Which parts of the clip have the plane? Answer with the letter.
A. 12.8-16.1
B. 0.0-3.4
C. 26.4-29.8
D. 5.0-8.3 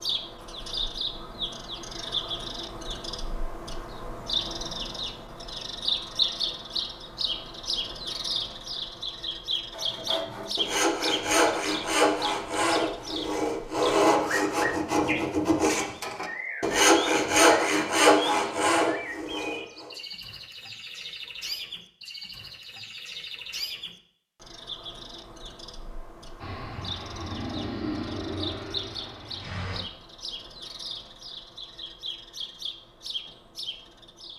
C.